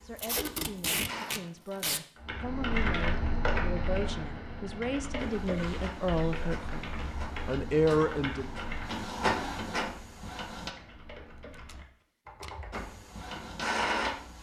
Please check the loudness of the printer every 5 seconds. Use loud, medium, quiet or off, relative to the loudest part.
medium, loud, loud.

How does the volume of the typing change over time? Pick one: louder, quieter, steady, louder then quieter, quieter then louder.
quieter.